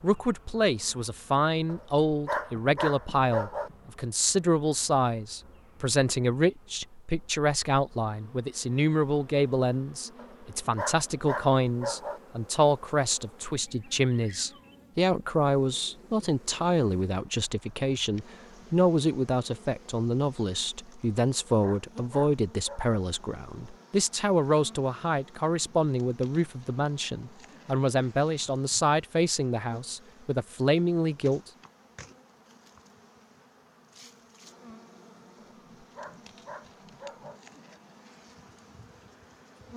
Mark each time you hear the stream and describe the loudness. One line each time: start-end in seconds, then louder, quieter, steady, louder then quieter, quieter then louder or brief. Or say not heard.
not heard.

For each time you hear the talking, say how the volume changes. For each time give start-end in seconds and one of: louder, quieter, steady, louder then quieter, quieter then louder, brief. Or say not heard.
0.0-31.5 steady.